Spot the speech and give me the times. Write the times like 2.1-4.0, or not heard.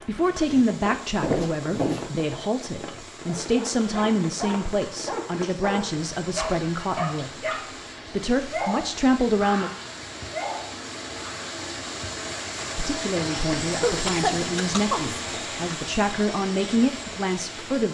0.1-7.5, 8.1-9.7, 12.8-17.8.